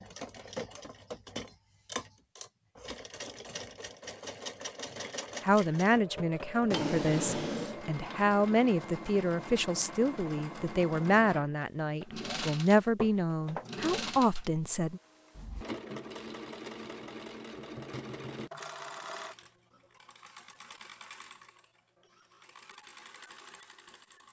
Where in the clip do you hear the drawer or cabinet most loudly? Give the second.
7 s.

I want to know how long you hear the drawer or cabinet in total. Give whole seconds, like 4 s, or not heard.
2 s.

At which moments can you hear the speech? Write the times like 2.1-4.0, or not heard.
5.4-15.0.